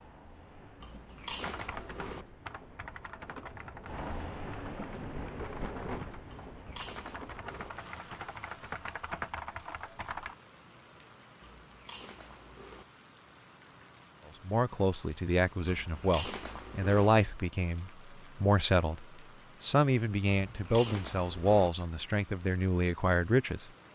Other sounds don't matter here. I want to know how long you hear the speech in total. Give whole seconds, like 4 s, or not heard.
9 s.